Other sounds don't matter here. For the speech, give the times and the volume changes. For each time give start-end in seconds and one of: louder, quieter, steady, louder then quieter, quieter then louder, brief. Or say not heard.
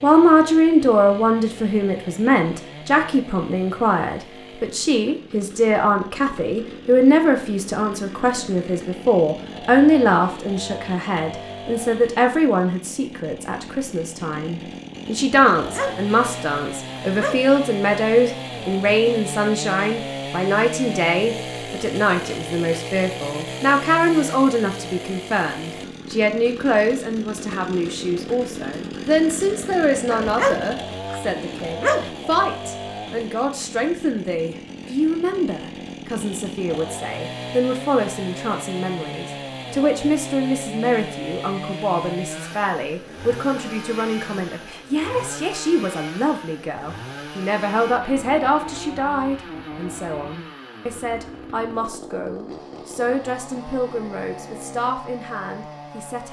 0.0-56.2 quieter.